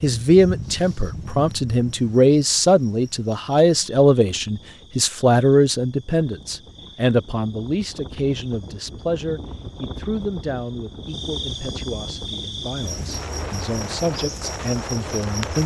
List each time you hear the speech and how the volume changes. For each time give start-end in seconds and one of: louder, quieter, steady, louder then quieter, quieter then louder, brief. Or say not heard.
0.0-15.6 quieter.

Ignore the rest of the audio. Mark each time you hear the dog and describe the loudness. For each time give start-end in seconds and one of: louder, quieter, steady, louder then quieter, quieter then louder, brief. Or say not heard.
not heard.